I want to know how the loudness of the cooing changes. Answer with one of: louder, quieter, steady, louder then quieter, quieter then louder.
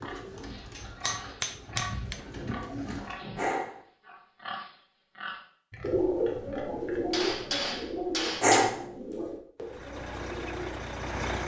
louder then quieter.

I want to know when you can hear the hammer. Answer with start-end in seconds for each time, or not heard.
0.8-2.2, 7.1-8.7.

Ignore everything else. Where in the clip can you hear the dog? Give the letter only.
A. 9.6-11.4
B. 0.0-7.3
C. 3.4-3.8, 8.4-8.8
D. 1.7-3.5
C.